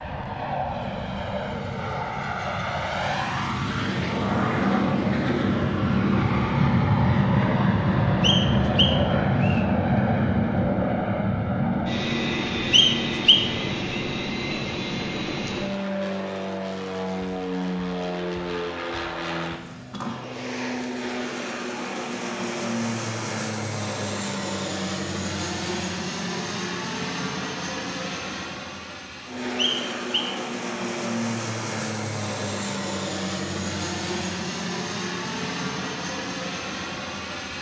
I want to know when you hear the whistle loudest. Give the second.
13 s.